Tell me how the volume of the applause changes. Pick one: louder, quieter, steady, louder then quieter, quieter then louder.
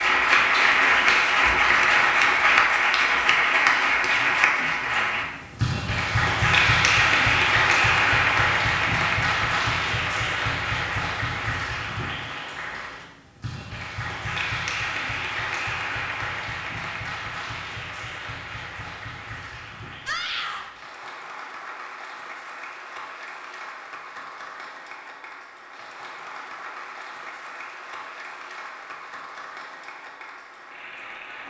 quieter.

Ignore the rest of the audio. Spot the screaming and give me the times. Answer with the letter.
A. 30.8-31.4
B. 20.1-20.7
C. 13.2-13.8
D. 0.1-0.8
B.